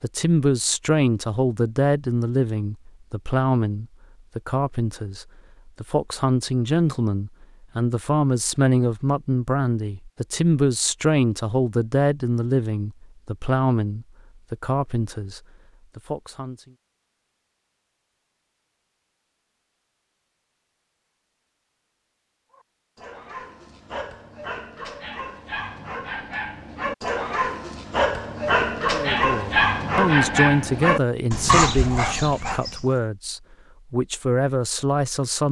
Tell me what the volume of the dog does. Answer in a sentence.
The loudness of the dog goes up.